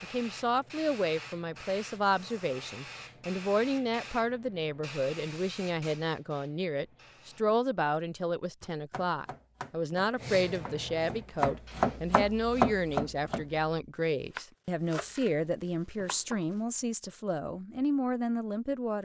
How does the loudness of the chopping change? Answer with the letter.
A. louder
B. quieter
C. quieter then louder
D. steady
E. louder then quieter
E.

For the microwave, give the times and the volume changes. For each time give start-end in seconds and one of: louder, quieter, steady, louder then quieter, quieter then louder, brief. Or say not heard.
not heard.